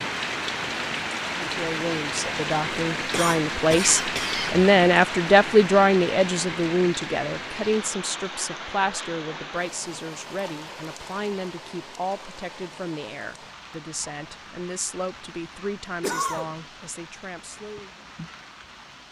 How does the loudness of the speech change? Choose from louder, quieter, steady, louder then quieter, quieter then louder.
quieter.